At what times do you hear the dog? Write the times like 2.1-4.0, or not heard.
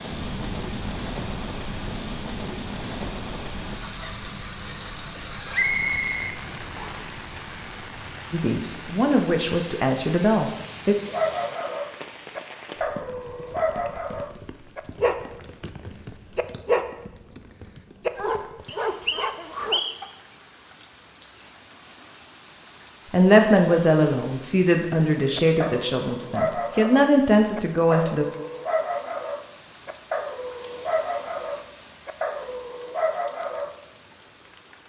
11.1-20.1, 25.4-33.8.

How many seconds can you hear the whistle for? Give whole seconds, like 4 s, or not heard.
3 s.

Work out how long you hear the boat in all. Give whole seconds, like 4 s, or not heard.
8 s.